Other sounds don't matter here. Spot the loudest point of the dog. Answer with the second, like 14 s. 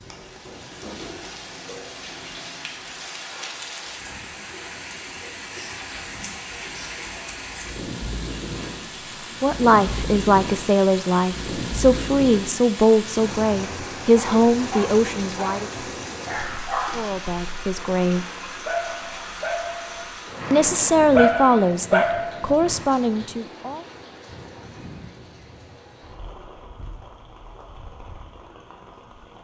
21 s.